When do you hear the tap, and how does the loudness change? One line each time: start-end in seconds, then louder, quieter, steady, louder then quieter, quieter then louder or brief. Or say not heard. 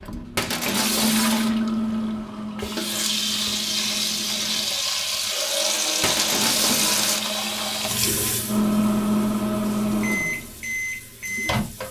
0.0-11.8 louder then quieter.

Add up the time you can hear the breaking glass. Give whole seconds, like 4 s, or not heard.
2 s.